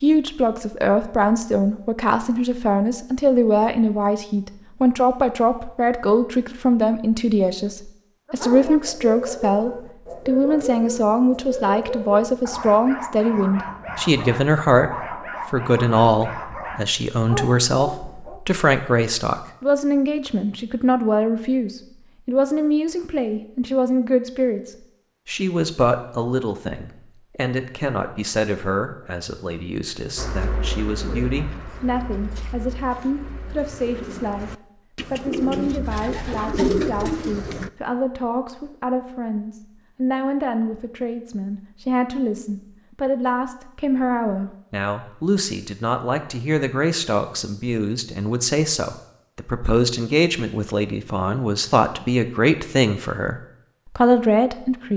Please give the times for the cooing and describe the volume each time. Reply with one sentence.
You can hear the cooing from 30.1 to 37.7 s, getting quieter then louder.